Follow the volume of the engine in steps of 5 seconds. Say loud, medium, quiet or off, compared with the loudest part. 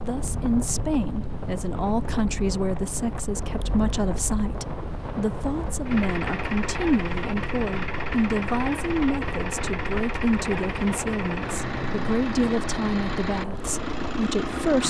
medium, loud, loud.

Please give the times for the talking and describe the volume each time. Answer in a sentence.
You can hear the talking from 0.0 to 14.8 s, at a steady volume.